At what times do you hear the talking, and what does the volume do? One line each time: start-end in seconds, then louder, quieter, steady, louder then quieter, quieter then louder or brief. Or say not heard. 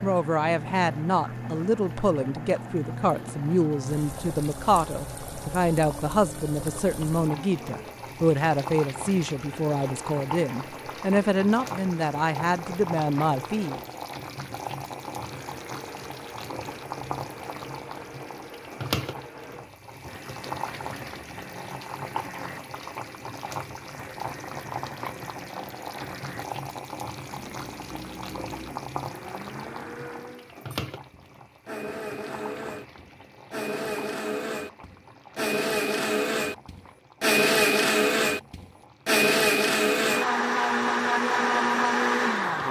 0.0-13.8 steady.